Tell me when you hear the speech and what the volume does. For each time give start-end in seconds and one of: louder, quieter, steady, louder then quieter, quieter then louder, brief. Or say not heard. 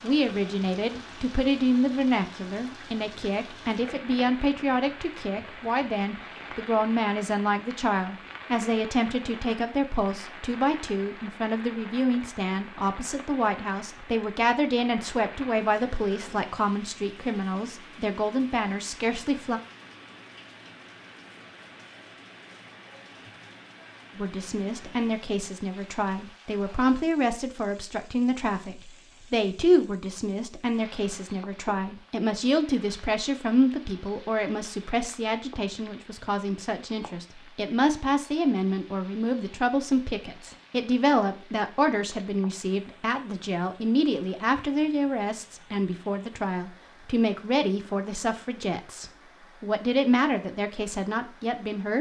0.0-19.6 steady
24.1-51.9 steady.